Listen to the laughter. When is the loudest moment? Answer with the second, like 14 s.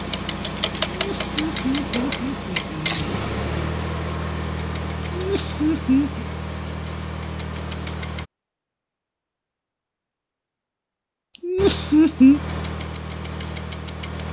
12 s.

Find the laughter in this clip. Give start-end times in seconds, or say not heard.
0.9-3.1, 5.1-6.2, 11.4-12.4.